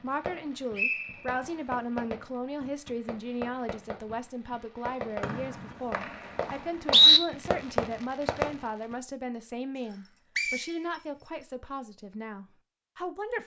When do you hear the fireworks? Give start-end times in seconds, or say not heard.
0.0-8.9.